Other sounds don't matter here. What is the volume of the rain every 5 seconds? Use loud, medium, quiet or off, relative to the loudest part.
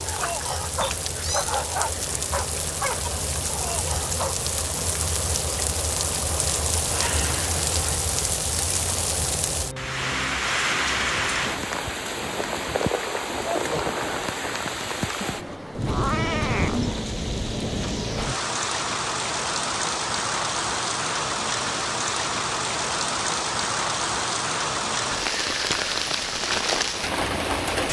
medium, loud, loud, loud, loud, loud.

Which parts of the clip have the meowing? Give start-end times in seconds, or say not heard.
0.8-1.5, 15.2-17.1.